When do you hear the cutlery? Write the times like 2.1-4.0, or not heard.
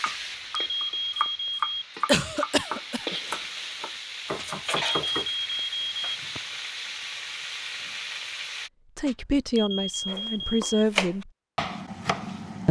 not heard.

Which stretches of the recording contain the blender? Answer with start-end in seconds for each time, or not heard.
not heard.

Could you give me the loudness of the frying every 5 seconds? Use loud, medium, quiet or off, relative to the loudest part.
loud, loud, off.